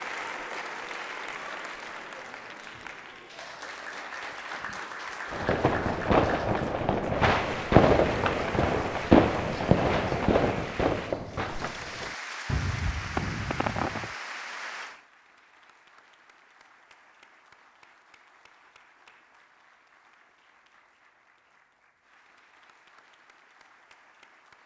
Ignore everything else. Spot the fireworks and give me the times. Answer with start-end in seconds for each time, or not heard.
5.3-14.1.